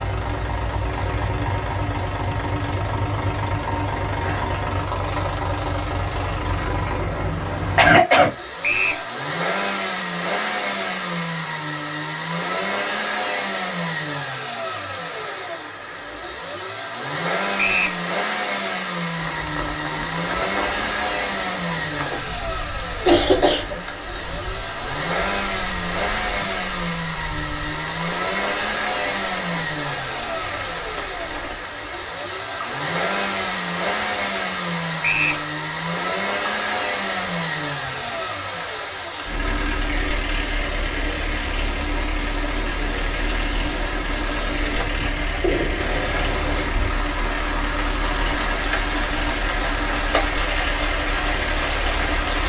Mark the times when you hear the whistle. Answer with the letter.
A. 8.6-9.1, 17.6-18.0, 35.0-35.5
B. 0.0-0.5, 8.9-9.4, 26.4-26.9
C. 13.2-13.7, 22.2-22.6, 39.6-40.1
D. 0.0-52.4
A.